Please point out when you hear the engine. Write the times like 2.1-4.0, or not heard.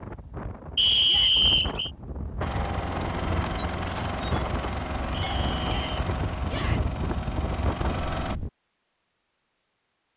2.4-8.3.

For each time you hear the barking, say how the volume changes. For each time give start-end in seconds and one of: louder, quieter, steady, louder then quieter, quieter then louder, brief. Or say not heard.
not heard.